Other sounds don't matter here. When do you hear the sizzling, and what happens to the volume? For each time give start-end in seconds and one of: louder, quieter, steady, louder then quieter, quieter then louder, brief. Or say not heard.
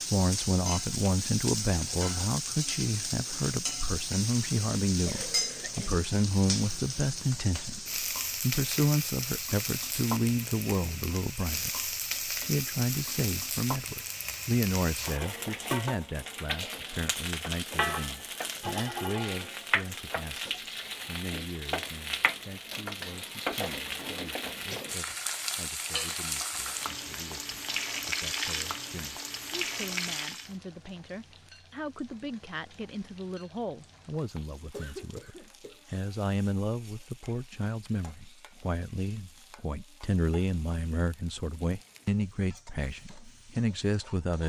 0.0-44.4 quieter.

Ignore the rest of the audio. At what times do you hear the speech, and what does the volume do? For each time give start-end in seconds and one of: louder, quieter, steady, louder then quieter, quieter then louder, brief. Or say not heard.
0.1-44.4 quieter then louder.